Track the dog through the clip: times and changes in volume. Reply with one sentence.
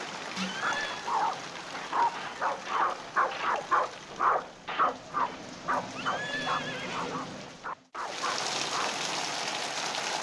You can hear the dog from 0.5 to 9.0 s, getting quieter.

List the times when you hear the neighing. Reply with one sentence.
The neighing can be heard from 0.4 to 1.1 s and from 6.0 to 7.5 s.